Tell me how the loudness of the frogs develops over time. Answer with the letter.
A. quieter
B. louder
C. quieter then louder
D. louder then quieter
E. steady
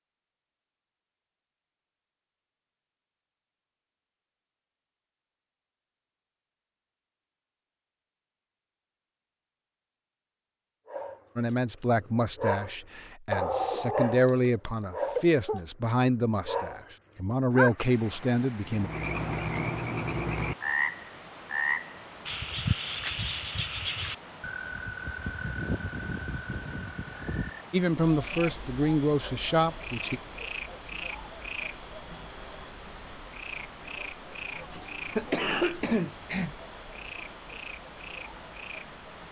A.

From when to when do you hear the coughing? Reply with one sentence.
You can hear the coughing from 13.7 to 15.6 s and from 34.7 to 36.5 s.